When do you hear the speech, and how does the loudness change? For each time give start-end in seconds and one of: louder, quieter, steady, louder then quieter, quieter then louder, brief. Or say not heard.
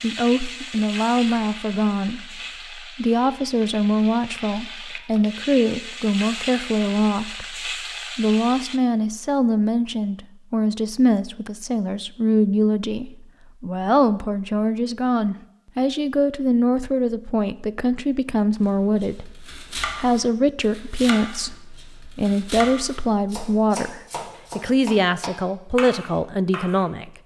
0.0-27.1 steady.